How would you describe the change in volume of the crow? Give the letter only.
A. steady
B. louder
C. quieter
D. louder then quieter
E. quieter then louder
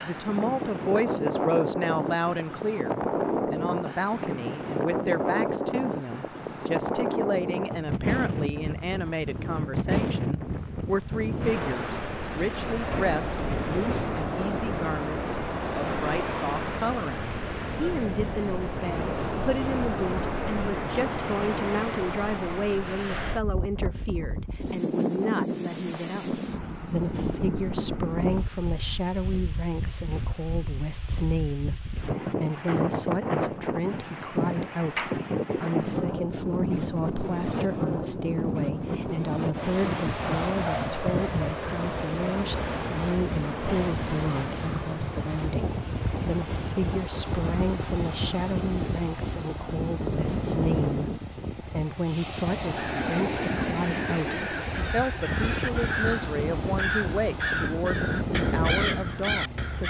B.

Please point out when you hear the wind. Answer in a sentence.
The wind can be heard from 0.0 to 59.8 s.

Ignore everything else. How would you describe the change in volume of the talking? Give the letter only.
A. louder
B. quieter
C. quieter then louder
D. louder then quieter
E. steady
E.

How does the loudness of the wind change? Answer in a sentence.
The loudness of the wind stays about the same.